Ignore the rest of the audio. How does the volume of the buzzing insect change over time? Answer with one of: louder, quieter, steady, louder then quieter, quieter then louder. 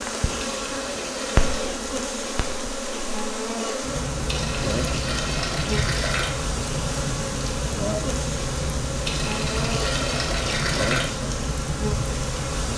steady.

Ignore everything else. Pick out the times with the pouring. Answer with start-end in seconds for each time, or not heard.
0.4-1.7, 4.2-6.3, 9.1-11.1.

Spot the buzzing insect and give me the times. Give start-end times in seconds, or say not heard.
0.0-12.7.